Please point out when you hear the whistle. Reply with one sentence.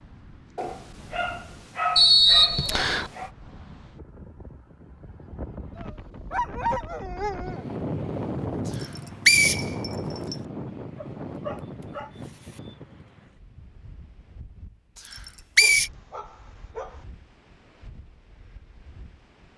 The whistle can be heard from 1.9 to 3.1 s, from 8.8 to 10.3 s and from 15.1 to 15.9 s.